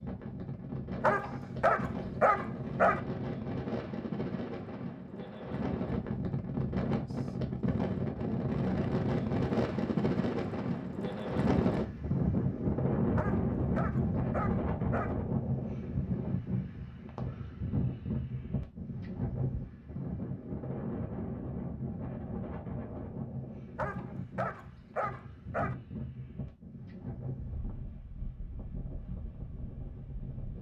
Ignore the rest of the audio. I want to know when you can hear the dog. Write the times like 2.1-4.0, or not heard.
1.0-3.0, 13.2-15.2, 23.8-25.8.